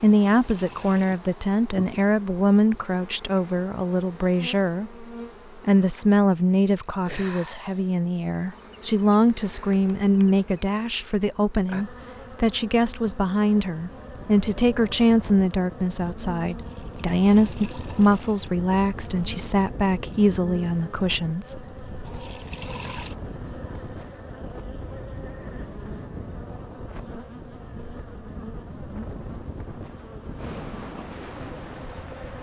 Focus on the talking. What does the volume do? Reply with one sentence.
The loudness of the talking stays about the same.